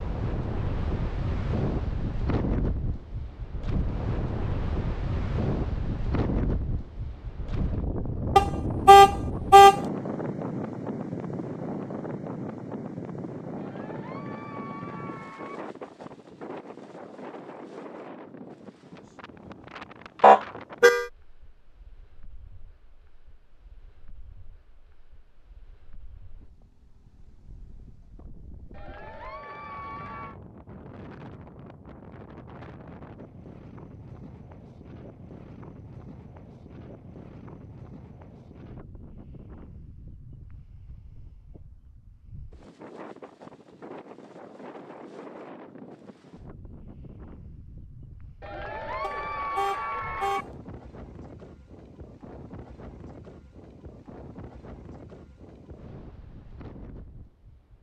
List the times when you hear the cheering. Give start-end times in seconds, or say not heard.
13.6-15.6, 28.7-30.4, 48.4-50.5.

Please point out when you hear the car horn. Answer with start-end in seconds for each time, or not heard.
8.3-9.8, 20.2-21.1, 49.0-50.5.